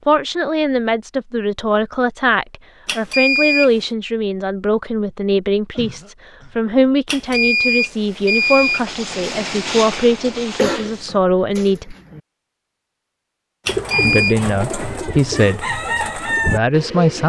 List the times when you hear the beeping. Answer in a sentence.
The beeping can be heard from 2.9 to 3.7 s, from 7.0 to 8.8 s and from 13.7 to 14.3 s.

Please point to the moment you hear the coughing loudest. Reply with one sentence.
The loudest moment of the coughing is at 11 seconds.